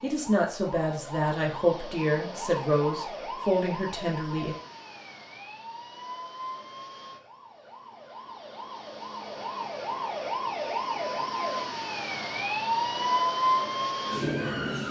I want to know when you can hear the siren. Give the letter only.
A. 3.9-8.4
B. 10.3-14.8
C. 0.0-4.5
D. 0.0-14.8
D.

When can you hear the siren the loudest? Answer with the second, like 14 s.
13 s.